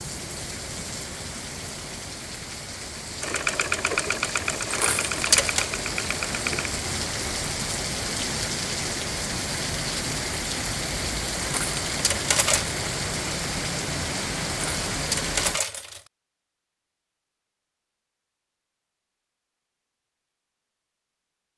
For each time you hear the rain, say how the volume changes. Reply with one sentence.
The rain can be heard from 0.0 to 15.6 s, getting louder.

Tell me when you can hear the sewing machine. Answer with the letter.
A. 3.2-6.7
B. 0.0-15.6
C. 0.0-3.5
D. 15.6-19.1
A.